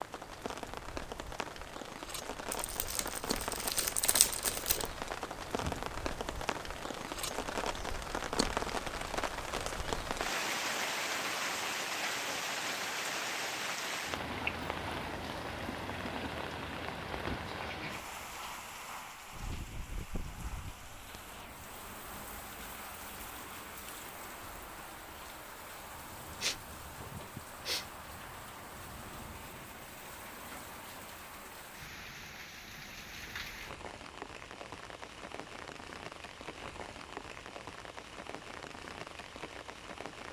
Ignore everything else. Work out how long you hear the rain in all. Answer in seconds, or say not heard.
40 s.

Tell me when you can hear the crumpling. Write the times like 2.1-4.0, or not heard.
2.5-4.9.